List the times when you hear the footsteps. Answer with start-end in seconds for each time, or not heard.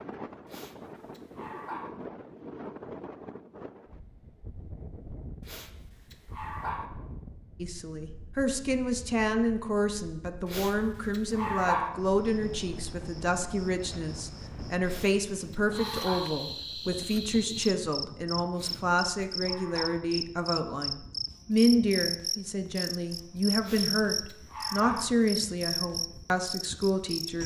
not heard.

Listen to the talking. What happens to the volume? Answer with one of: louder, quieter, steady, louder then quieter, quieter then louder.
steady.